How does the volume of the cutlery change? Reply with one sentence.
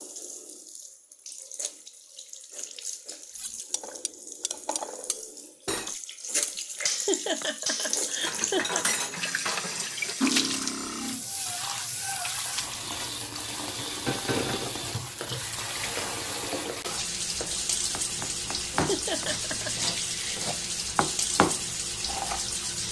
The volume of the cutlery goes up.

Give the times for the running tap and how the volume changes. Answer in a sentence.
You can hear the running tap from 0.0 to 22.8 s, getting louder.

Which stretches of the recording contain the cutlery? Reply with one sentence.
The cutlery can be heard from 3.3 to 11.2 s.